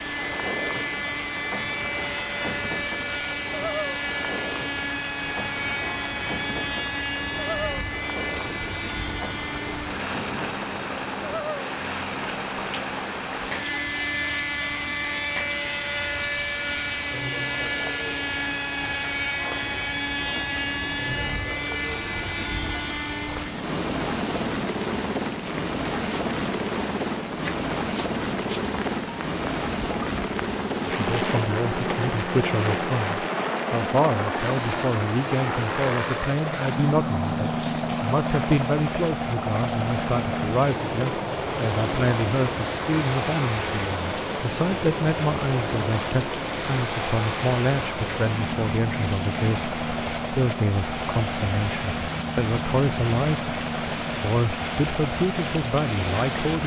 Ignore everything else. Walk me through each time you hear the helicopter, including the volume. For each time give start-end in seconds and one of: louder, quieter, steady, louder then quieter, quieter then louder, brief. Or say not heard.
0.0-56.6 steady.